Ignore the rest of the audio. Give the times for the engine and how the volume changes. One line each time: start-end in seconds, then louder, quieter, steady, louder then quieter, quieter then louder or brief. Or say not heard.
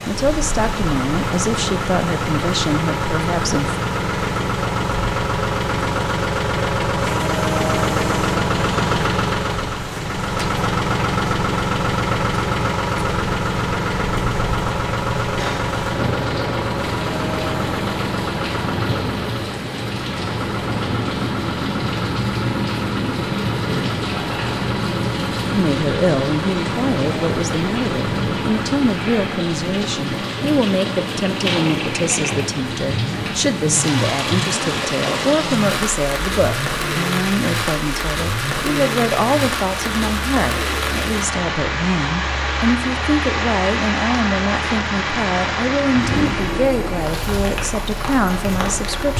0.1-49.1 quieter.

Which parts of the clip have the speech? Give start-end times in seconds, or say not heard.
0.1-3.8, 25.5-49.1.